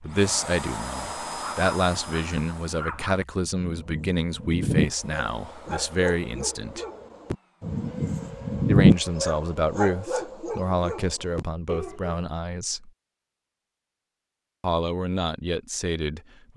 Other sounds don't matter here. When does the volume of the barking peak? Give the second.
9 s.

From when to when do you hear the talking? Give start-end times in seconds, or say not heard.
0.0-6.8, 8.7-12.9, 14.6-16.5.